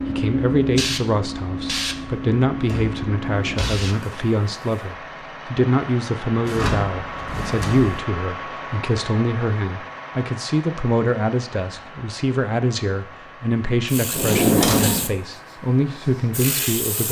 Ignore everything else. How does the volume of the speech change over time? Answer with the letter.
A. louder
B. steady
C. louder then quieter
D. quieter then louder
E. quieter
B.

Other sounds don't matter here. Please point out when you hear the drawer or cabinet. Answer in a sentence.
The drawer or cabinet can be heard from 2.5 to 3.9 s, from 6.4 to 8.0 s and from 14.1 to 15.1 s.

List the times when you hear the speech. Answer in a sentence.
The speech can be heard from 0.1 to 17.0 s.